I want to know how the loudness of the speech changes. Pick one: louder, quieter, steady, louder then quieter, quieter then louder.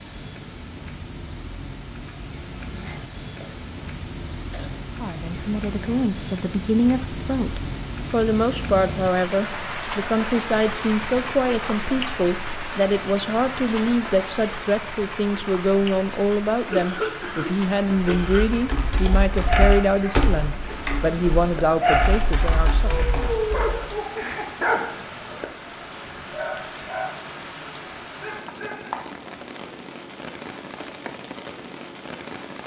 steady.